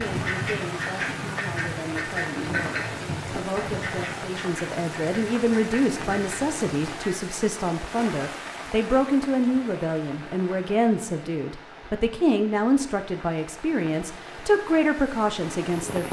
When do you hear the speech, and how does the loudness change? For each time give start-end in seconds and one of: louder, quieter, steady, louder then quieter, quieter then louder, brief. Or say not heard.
0.0-16.0 louder.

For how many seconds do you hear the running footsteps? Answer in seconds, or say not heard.
not heard.